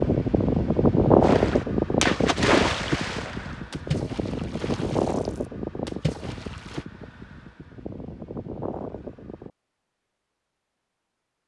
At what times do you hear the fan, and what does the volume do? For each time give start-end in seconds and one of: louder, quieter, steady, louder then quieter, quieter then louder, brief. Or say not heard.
0.0-9.5 quieter.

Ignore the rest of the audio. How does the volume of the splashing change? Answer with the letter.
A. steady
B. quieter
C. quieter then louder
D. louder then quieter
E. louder
C.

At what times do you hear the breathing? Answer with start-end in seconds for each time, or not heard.
not heard.